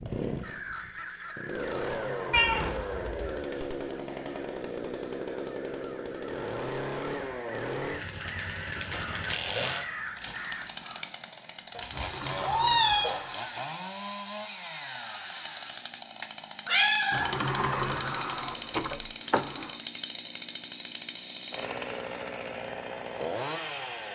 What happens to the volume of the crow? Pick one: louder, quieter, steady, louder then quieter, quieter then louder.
quieter then louder.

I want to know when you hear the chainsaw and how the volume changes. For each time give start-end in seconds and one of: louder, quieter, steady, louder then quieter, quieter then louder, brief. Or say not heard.
0.0-24.1 steady.